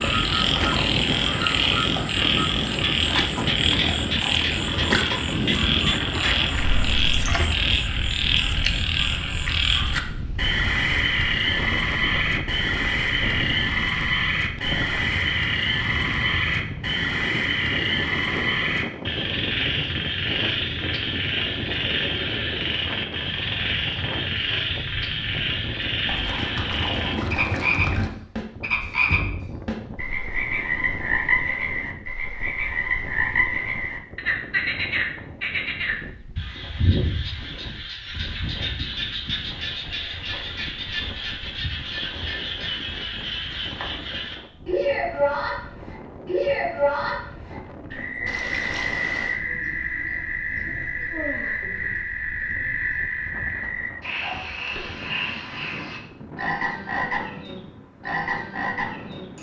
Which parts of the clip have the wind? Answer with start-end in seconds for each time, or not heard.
0.0-59.3.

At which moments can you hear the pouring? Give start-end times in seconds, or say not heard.
6.5-7.5, 26.1-28.1, 48.2-49.4.